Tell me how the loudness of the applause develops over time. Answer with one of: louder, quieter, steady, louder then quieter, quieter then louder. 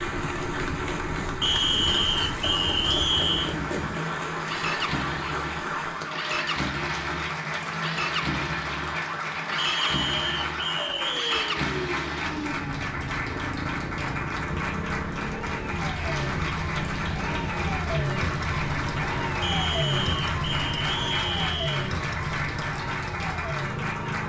steady.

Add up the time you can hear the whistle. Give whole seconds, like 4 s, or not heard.
7 s.